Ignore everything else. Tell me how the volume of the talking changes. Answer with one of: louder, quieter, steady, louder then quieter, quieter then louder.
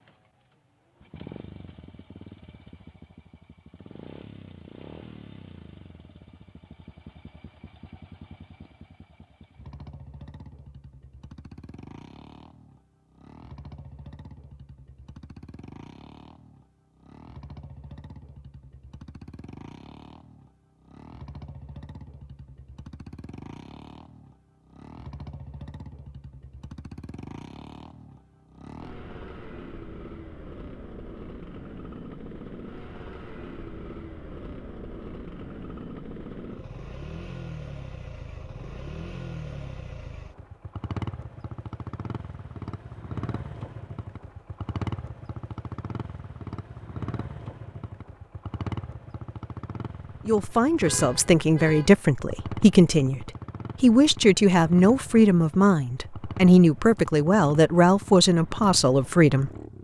steady.